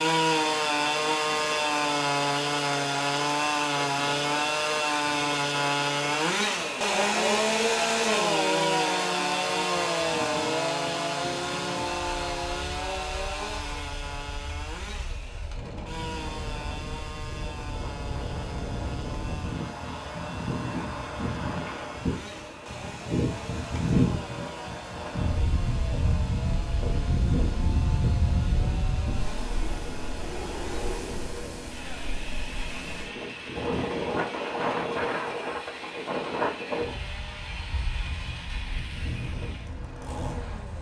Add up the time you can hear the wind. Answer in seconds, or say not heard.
41 s.